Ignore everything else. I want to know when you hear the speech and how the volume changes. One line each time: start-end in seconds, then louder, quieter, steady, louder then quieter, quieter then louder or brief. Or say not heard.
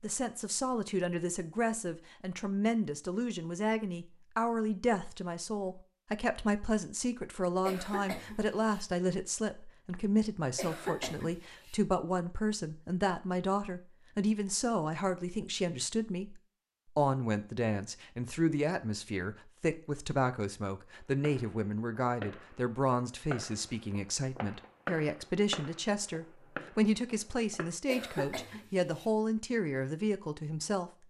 0.0-30.9 steady.